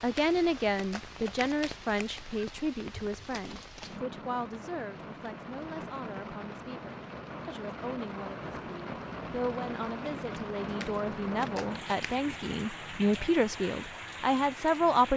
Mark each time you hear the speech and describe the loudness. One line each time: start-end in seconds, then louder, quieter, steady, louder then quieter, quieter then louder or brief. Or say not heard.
0.0-15.1 quieter then louder.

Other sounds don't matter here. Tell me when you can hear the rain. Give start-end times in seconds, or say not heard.
0.0-15.1.